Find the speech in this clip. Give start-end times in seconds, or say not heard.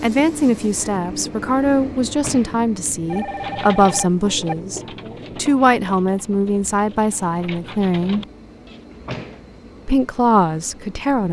0.0-8.2, 9.8-11.2.